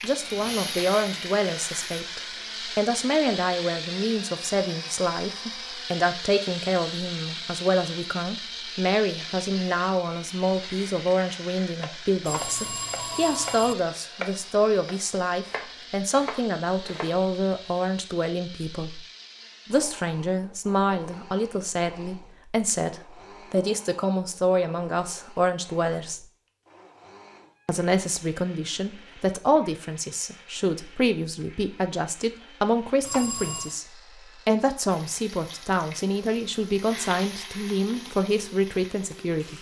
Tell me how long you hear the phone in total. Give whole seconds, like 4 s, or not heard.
2 s.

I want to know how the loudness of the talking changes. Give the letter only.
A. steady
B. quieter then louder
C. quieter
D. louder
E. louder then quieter
A.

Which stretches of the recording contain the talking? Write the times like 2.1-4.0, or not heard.
0.0-19.1, 19.6-26.2, 27.6-39.5.